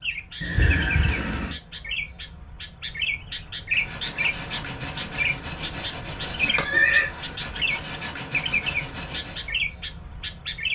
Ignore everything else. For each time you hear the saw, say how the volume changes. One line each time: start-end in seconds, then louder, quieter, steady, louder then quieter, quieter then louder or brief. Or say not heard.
3.7-9.6 steady.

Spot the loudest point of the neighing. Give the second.
7 s.